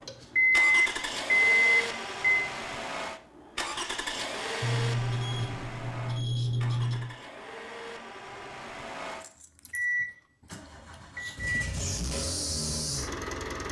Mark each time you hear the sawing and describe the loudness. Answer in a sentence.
You can't hear the sawing here.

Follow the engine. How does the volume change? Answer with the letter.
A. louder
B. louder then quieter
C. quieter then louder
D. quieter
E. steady
C.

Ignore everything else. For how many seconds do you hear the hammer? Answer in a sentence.
You can't hear the hammer here.